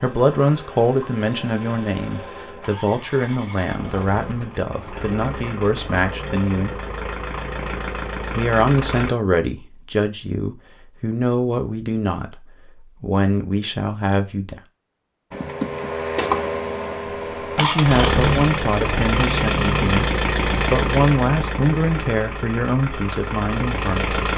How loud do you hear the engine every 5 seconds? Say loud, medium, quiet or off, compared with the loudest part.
quiet, medium, off, loud, loud.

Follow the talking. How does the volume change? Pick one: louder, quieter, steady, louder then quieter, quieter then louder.
steady.